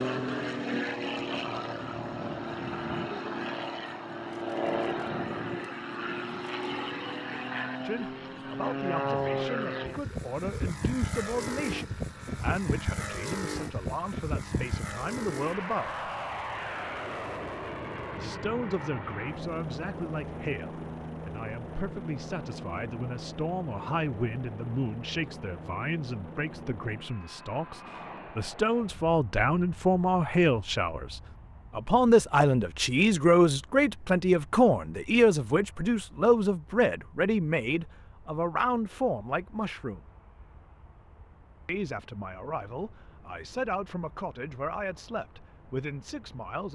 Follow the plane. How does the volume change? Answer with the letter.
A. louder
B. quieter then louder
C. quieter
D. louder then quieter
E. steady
C.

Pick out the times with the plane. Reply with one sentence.
The plane can be heard from 0.0 to 46.7 s.